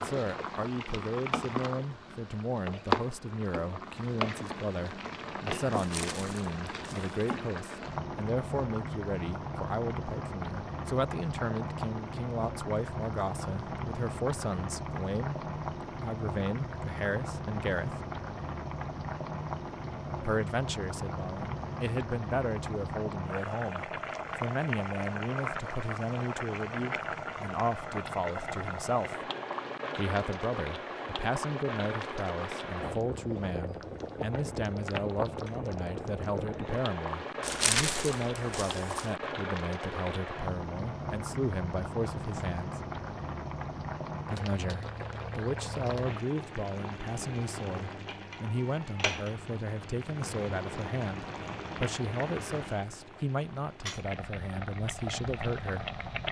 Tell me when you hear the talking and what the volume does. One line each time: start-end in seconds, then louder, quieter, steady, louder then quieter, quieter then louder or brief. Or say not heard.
0.0-18.0 steady
20.2-29.3 steady
29.9-42.8 steady
44.2-56.0 steady.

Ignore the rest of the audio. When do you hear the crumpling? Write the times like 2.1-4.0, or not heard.
5.7-7.3, 37.4-39.1.